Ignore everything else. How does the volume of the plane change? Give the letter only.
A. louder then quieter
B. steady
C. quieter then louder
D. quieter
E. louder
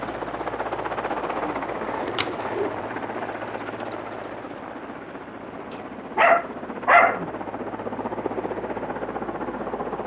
C.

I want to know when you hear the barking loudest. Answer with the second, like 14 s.
7 s.